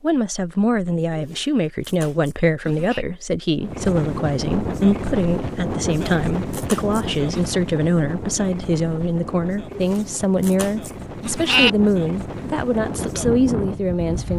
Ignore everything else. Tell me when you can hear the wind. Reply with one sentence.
The wind can be heard from 3.5 to 14.3 s.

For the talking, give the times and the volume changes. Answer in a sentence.
The talking can be heard from 0.0 to 14.3 s, at a steady volume.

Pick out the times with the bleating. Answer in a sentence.
The bleating can be heard from 1.1 to 3.0 s, from 6.0 to 7.5 s and from 9.7 to 11.7 s.